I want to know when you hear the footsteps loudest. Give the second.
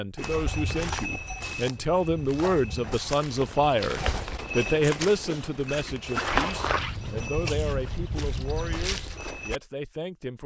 6 s.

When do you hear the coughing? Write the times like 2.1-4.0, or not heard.
not heard.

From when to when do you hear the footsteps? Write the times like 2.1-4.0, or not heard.
0.1-9.6.